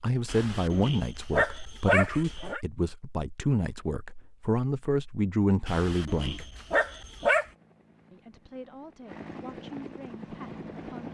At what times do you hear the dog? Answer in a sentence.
The dog can be heard from 0.2 to 2.6 s and from 5.7 to 7.5 s.